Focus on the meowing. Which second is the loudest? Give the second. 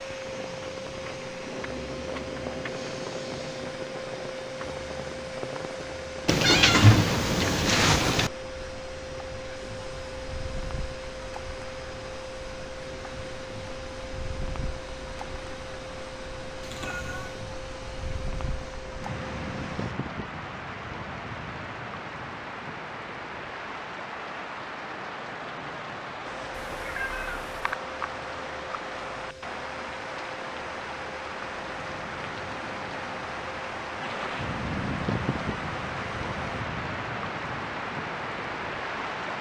7 s.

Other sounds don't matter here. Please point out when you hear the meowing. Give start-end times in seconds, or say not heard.
6.2-8.3, 16.6-17.4, 26.6-27.6.